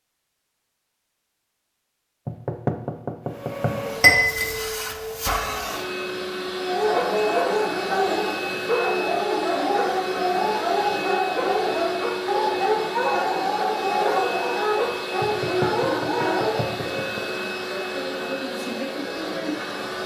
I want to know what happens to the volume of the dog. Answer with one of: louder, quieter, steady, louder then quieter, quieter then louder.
steady.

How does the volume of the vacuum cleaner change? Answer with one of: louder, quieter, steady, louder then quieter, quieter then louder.
steady.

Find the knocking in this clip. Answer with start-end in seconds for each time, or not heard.
2.2-3.9, 15.2-17.2.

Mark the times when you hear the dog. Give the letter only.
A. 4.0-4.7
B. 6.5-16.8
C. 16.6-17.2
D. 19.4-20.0
B.